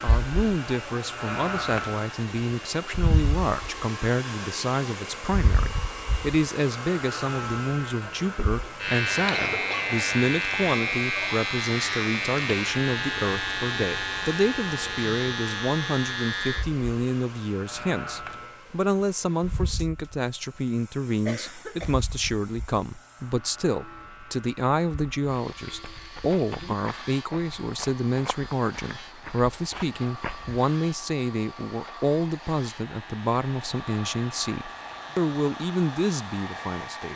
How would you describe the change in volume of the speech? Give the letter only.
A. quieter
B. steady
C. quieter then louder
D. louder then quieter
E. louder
B.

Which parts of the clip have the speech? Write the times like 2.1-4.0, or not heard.
0.0-37.1.